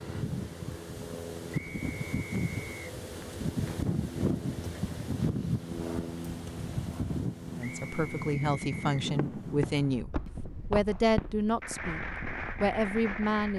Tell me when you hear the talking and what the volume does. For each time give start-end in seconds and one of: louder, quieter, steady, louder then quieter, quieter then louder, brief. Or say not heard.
7.5-13.5 steady.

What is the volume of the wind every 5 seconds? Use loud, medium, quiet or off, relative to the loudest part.
loud, loud, quiet.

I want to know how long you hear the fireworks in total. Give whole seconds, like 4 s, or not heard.
5 s.